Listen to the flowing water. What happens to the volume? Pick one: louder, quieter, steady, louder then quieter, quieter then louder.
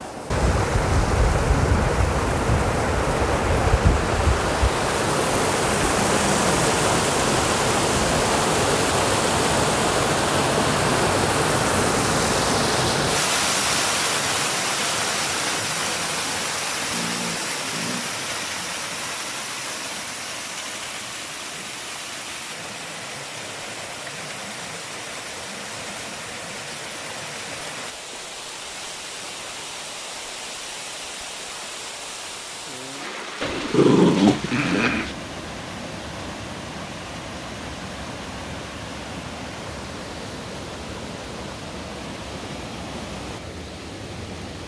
quieter.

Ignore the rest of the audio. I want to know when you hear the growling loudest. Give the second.
34 s.